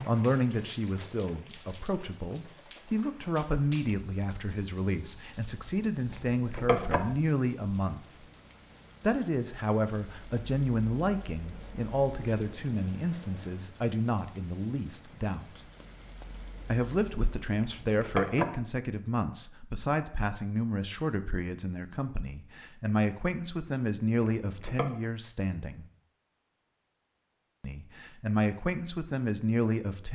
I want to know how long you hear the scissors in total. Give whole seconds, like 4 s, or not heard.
2 s.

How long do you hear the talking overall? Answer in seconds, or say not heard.
26 s.